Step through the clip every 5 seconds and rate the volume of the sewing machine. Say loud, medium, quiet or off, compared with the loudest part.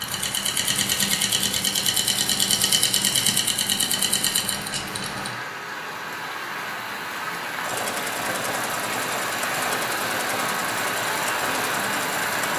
loud, medium, medium.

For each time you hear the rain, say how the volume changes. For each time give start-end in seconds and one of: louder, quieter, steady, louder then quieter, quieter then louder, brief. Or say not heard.
0.0-12.5 louder.